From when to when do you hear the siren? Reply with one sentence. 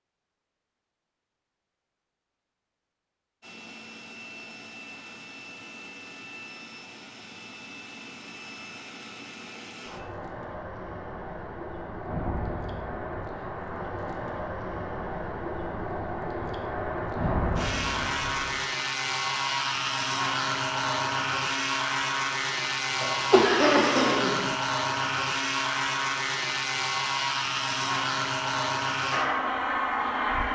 The siren can't be heard in this clip.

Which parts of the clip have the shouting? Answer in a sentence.
The shouting can't be heard in this clip.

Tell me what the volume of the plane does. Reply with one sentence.
The volume of the plane goes up.